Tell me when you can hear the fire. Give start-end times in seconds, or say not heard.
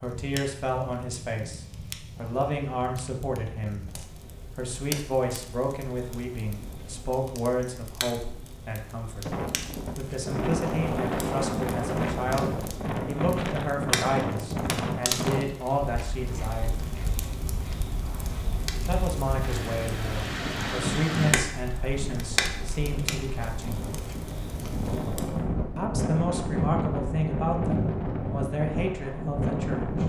0.0-25.4.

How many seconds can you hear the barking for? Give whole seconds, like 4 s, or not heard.
not heard.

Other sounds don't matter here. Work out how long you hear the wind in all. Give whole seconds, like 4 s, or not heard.
21 s.